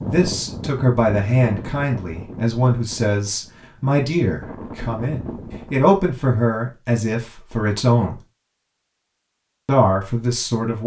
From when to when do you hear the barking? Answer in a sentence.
The barking can't be heard in this clip.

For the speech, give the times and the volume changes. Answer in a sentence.
The speech can be heard from 0.0 to 8.2 s, at a steady volume; and briefly from 9.7 to 10.8 s.